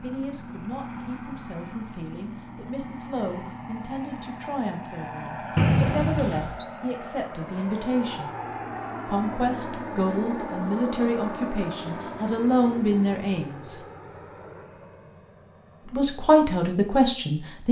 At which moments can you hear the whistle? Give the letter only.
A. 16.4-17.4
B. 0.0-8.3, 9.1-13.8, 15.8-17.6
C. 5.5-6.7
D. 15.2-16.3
C.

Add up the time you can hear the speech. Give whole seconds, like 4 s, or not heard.
15 s.